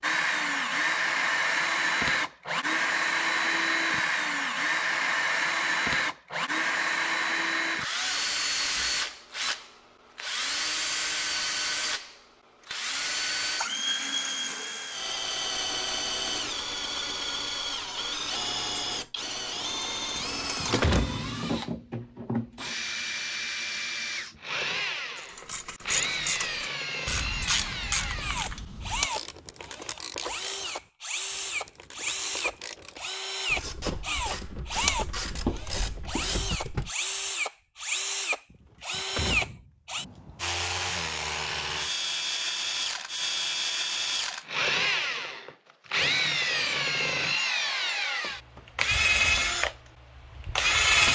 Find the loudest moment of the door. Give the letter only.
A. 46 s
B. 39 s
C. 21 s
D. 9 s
C.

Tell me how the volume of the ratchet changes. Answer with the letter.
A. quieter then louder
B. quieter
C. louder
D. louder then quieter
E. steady
A.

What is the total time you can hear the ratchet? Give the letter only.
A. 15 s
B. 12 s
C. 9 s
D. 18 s
B.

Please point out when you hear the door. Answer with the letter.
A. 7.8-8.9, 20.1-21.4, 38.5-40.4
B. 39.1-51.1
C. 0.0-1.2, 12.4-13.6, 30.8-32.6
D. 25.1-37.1
A.